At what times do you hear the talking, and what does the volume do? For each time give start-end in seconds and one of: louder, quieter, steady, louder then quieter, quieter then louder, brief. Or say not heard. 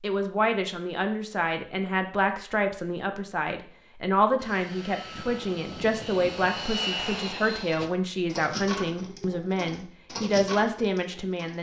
0.0-11.5 steady.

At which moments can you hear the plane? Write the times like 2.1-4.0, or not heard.
4.3-7.9.